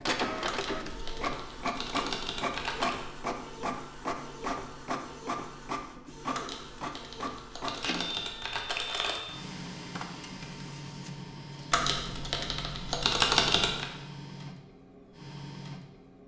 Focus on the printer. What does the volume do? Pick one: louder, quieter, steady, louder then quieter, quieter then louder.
quieter.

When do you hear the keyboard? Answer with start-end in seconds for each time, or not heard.
0.5-3.0, 6.3-9.2, 11.7-13.8.